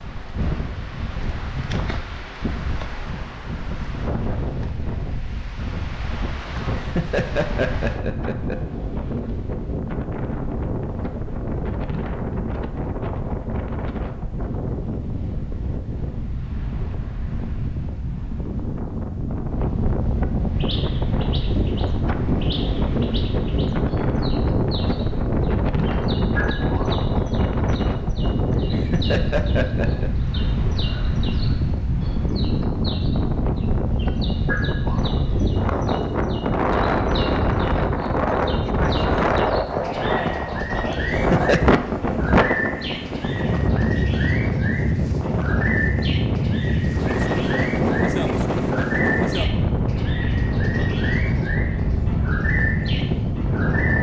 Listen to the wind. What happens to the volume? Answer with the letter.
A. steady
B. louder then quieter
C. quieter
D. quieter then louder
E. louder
E.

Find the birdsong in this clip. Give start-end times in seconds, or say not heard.
20.6-53.9.